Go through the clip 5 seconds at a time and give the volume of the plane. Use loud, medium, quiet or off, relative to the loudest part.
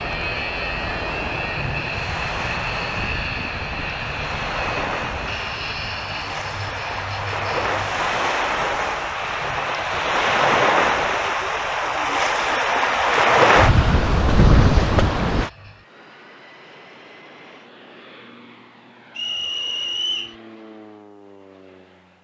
loud, medium, quiet, quiet, quiet.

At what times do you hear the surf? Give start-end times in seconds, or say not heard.
0.0-15.5.